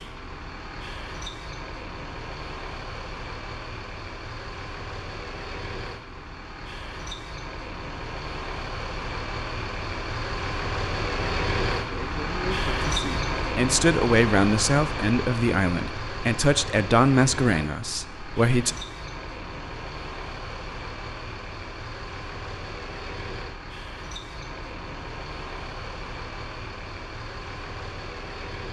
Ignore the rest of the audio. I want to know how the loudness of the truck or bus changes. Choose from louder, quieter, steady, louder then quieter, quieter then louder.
louder then quieter.